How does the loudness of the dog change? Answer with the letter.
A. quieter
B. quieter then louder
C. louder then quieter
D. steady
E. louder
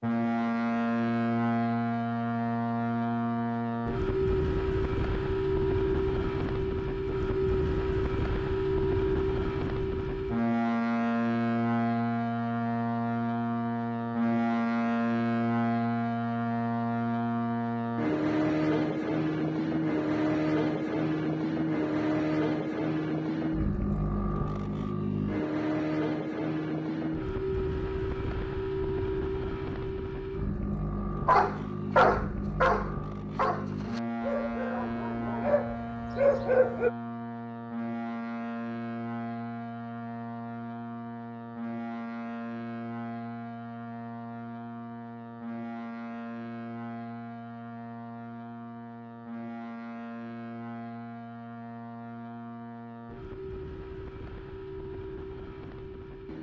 B.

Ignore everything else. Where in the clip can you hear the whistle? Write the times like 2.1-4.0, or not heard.
not heard.